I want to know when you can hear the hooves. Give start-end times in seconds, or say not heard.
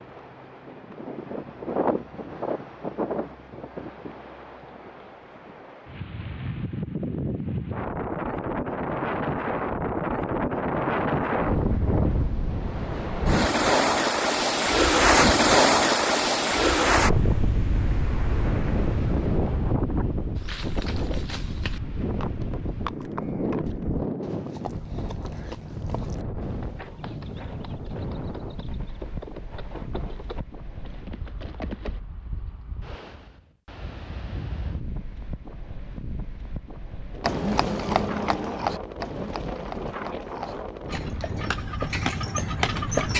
20.4-32.0, 37.2-43.1.